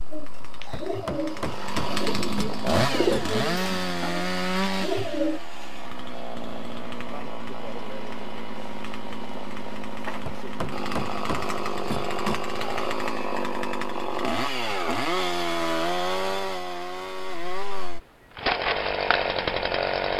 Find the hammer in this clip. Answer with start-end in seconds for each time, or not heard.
0.7-3.4, 10.2-12.4.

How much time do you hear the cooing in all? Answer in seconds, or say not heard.
5 s.